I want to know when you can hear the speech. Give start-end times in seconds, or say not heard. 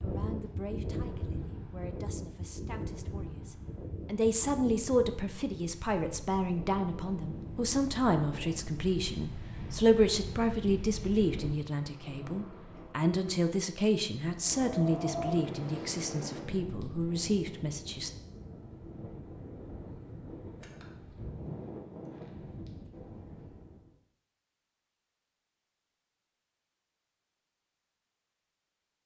0.0-18.1.